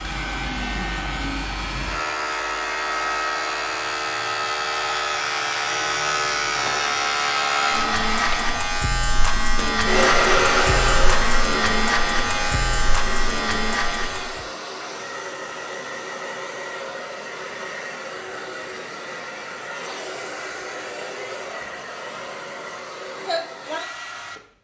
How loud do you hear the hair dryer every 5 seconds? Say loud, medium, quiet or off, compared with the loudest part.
medium, loud, loud, medium, medium.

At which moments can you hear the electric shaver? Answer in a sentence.
You can hear the electric shaver from 0.0 to 14.4 s.